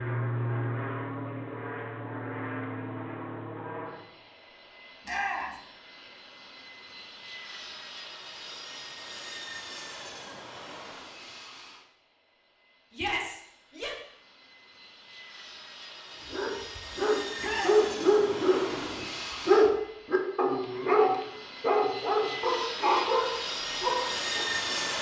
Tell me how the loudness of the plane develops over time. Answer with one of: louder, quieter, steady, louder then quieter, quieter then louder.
quieter then louder.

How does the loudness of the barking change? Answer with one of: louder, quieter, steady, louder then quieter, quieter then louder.
steady.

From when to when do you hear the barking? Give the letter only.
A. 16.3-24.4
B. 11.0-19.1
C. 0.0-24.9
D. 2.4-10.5
A.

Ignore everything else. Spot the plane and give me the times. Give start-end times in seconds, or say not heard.
0.0-24.9.